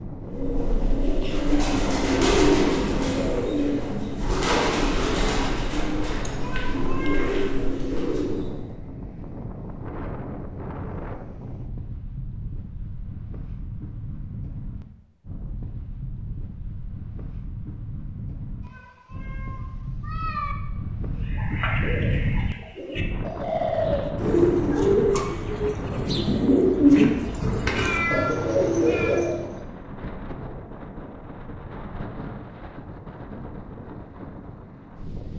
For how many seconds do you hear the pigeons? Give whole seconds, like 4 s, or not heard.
17 s.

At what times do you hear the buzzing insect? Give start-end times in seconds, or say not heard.
not heard.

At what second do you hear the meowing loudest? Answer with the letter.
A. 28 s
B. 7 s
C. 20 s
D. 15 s
A.